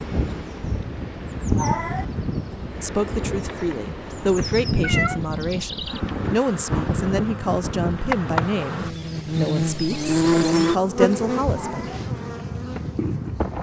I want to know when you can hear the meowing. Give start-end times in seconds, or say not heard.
1.6-2.0, 4.8-5.2, 11.5-12.1.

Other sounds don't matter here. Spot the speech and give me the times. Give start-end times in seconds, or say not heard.
2.8-11.9.